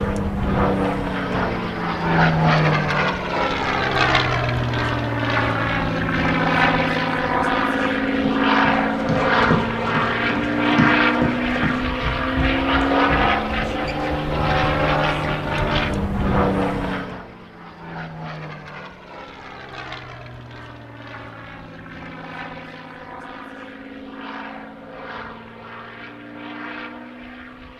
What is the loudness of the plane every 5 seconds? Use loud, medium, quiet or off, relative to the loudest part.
loud, loud, loud, medium, quiet, quiet.